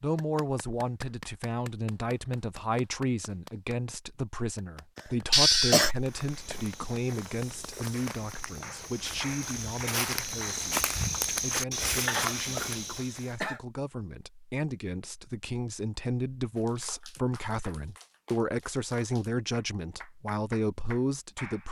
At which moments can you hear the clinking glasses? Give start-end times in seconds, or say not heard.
not heard.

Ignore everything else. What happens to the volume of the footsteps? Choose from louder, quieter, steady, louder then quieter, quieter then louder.
louder.